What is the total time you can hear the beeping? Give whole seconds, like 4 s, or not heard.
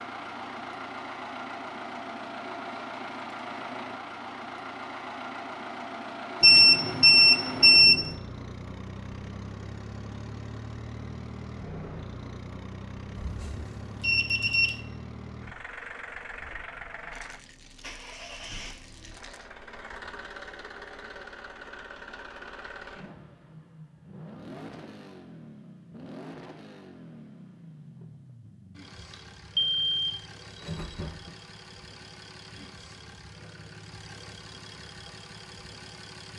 5 s.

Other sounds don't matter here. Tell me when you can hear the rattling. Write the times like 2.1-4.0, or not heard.
17.1-19.6.